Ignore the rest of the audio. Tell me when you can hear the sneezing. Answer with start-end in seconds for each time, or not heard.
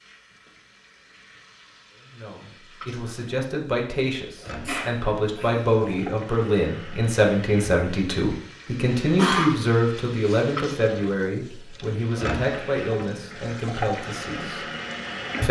4.7-5.7, 9.1-10.4.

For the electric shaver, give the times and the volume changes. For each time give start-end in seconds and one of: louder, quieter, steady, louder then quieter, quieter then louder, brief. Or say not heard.
not heard.